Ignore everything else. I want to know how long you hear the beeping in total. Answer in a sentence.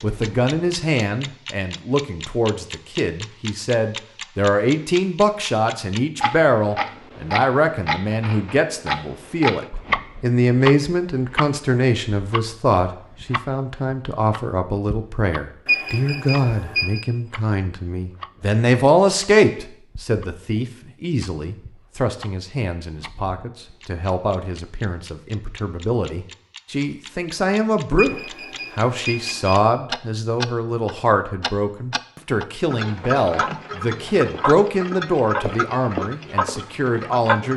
You can hear the beeping for 3 seconds altogether.